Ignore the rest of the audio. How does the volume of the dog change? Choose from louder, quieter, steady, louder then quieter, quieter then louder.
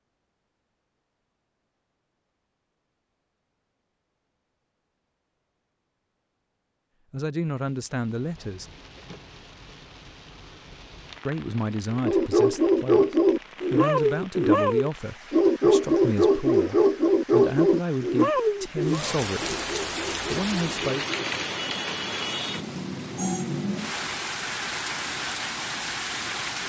quieter.